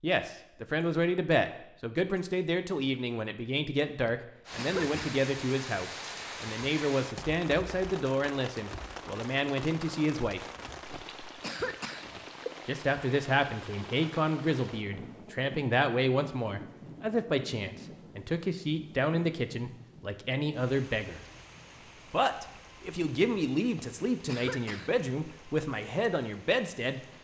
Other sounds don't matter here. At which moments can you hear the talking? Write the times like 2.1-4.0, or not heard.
0.0-10.4, 12.7-21.2, 22.1-27.0.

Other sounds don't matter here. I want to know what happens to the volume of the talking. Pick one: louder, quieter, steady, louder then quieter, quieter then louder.
steady.